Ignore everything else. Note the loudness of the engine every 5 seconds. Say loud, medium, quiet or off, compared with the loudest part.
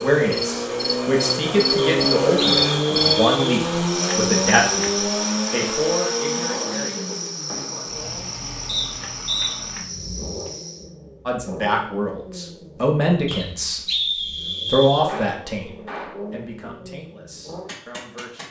loud, medium, quiet, quiet.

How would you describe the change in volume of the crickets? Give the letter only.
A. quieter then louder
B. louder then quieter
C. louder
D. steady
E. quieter
E.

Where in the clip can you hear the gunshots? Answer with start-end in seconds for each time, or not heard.
15.1-16.2.